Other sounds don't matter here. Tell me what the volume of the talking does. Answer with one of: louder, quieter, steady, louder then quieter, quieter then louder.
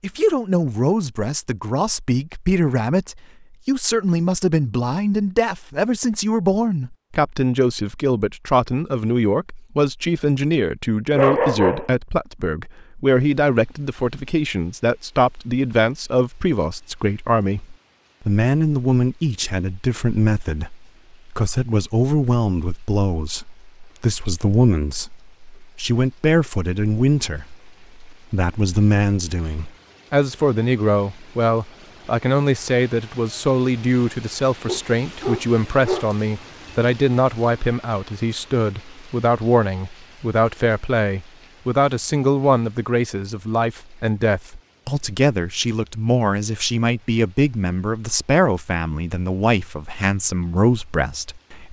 steady.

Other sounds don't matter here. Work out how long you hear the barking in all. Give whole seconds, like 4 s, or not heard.
2 s.